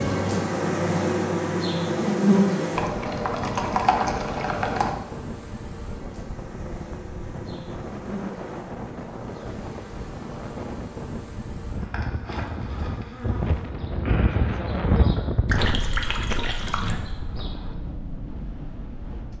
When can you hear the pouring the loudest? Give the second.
4 s.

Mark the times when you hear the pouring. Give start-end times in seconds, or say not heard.
2.8-5.0, 15.4-16.9.